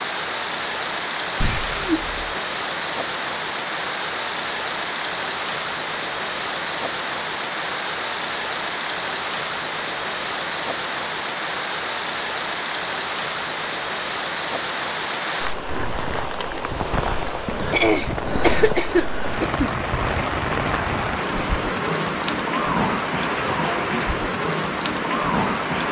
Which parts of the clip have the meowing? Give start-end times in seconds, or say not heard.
not heard.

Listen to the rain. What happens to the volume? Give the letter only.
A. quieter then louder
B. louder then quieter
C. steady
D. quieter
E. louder
C.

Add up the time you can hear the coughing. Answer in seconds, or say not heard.
3 s.